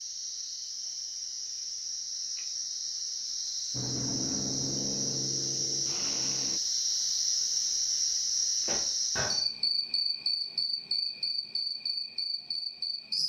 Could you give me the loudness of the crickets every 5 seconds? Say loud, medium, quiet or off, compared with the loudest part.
medium, loud, loud.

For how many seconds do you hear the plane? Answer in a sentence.
The plane can be heard for 3 seconds in total.